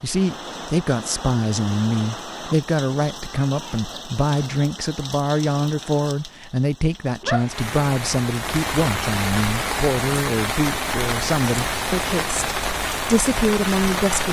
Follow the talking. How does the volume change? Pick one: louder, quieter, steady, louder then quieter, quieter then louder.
steady.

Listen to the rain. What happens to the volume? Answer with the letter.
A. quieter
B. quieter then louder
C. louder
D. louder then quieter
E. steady
C.